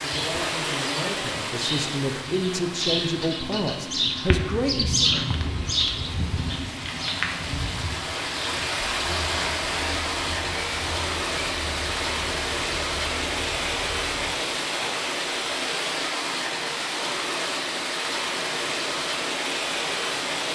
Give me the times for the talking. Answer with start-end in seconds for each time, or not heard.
0.0-5.1.